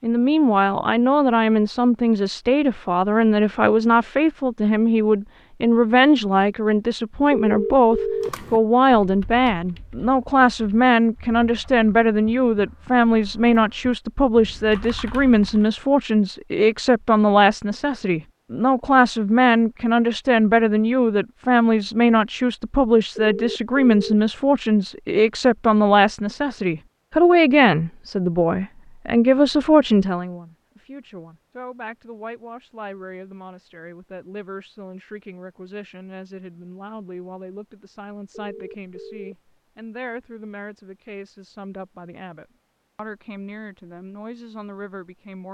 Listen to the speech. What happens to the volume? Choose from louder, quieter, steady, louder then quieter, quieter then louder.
quieter.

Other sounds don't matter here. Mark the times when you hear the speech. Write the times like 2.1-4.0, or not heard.
0.0-45.5.